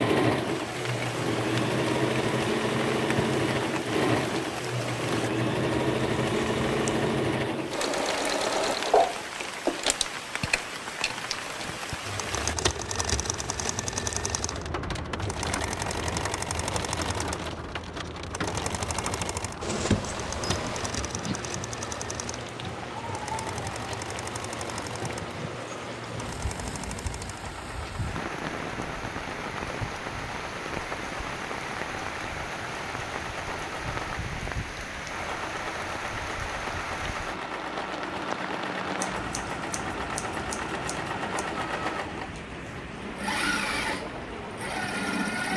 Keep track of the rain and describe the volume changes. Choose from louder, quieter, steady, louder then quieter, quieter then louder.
steady.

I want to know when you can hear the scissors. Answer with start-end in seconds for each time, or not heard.
19.6-20.9, 39.0-41.5.